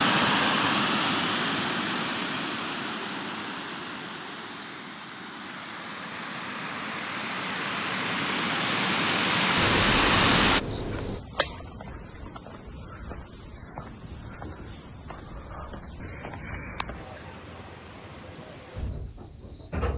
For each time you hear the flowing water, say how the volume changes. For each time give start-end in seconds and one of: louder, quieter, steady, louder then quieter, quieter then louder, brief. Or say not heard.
0.0-10.6 quieter then louder.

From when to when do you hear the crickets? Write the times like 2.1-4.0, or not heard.
9.6-19.9.